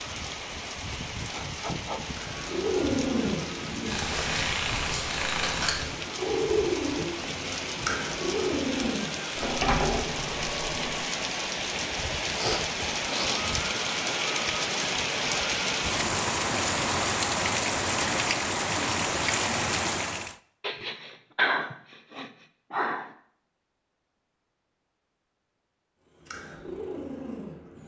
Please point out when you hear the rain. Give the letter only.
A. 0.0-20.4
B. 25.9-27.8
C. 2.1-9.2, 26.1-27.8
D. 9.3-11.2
A.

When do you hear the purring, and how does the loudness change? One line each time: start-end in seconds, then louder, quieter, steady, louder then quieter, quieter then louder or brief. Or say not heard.
2.1-9.2 steady
26.1-27.8 brief.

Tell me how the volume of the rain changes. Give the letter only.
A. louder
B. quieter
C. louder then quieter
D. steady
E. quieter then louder
A.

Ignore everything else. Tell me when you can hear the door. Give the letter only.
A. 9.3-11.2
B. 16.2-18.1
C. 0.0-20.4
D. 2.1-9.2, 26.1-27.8
A.